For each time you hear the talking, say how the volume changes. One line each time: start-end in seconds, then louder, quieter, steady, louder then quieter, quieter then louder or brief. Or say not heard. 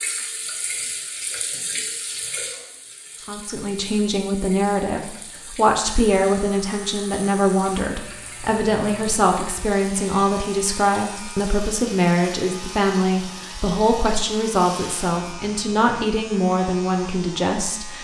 3.2-17.9 steady.